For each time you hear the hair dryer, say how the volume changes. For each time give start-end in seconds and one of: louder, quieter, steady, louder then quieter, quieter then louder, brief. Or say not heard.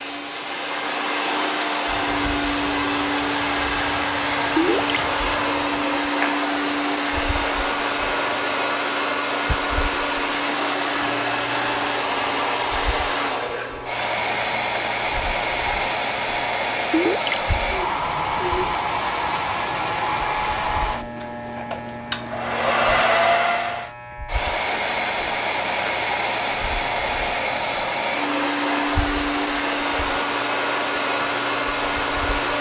0.0-32.5 steady.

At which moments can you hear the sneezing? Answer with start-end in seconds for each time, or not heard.
not heard.